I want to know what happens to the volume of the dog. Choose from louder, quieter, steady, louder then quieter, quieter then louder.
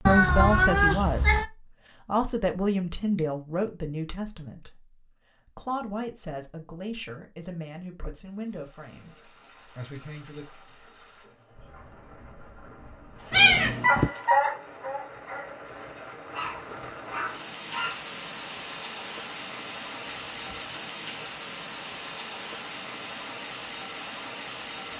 quieter then louder.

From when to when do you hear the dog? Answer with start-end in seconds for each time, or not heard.
13.3-18.1.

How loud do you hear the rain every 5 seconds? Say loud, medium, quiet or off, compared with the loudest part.
off, quiet, quiet, loud, loud.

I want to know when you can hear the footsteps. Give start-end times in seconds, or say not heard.
not heard.